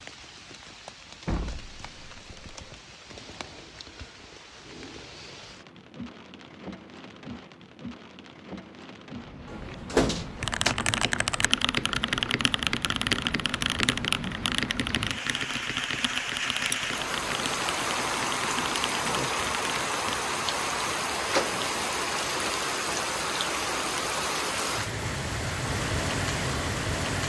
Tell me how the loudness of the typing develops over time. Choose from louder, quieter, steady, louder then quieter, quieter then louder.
quieter.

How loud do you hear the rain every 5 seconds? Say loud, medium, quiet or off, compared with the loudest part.
quiet, quiet, medium, loud, loud, loud.